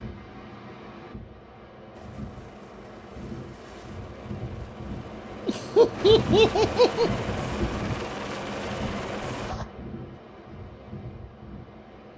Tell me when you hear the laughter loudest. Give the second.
6 s.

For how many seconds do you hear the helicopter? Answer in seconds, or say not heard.
8 s.